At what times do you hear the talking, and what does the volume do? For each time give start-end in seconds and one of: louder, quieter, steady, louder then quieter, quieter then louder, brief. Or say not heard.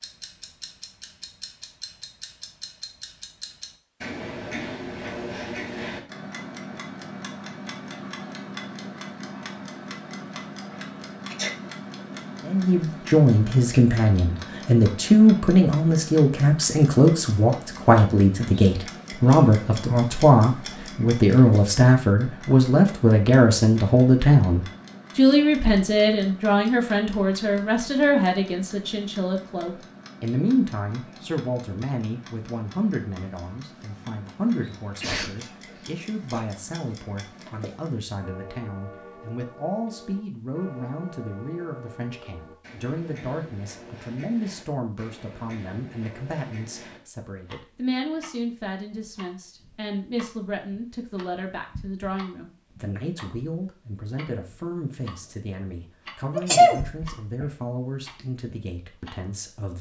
12.4-59.7 quieter.